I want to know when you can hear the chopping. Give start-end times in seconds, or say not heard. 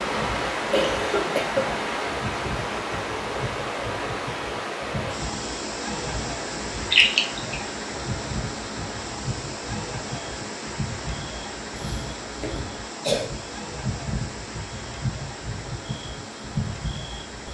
not heard.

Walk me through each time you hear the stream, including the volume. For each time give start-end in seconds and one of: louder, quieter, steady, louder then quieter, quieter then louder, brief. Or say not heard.
0.0-17.4 quieter.